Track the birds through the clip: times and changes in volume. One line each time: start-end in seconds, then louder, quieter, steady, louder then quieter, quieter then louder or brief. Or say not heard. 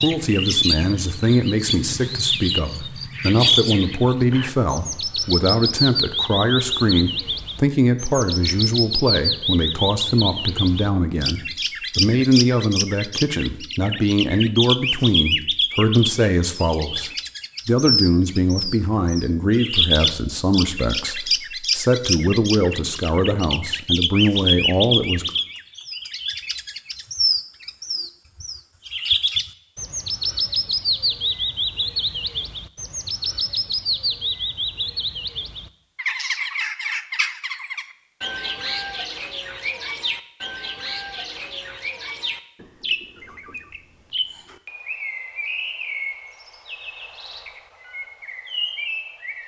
0.0-49.4 quieter.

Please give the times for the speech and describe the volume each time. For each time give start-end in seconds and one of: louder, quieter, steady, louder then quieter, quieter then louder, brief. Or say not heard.
0.0-25.3 steady.